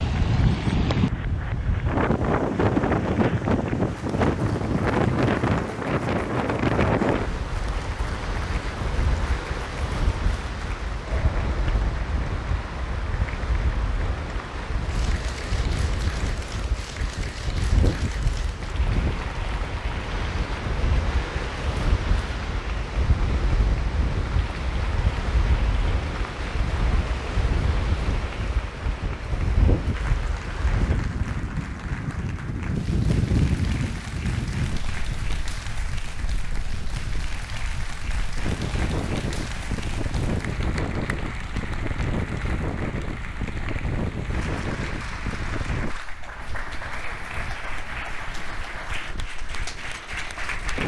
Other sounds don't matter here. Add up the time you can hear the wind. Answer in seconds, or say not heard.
51 s.